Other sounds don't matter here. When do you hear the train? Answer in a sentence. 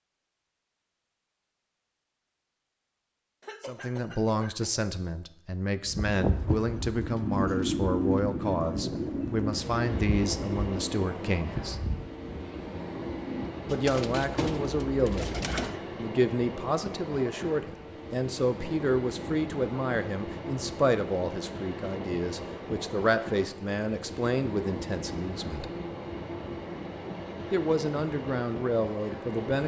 You can hear the train from 9.4 to 29.6 s.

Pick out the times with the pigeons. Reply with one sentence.
The pigeons can be heard from 5.8 to 15.7 s.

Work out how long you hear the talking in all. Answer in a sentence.
The talking can be heard for 22 seconds in total.